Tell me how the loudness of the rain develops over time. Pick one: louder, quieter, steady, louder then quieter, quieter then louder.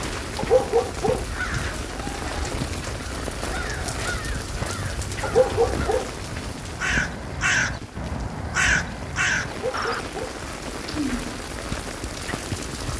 quieter then louder.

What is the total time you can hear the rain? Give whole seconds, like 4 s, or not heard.
13 s.